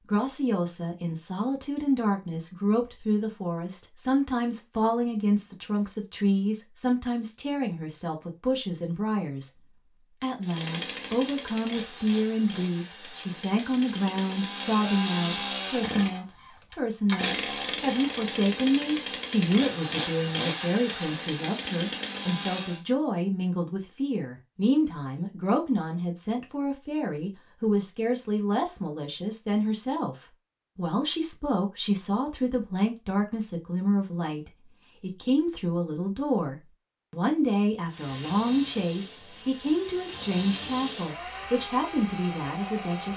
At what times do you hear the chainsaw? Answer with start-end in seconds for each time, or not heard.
10.4-22.8, 37.9-43.1.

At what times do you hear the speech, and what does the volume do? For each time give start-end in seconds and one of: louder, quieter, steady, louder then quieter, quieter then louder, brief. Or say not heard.
0.1-43.1 steady.